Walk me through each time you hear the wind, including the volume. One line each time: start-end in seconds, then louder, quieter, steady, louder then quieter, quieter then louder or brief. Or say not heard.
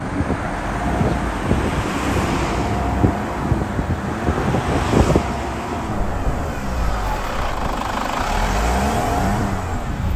0.0-10.1 quieter.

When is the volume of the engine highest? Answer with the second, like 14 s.
9 s.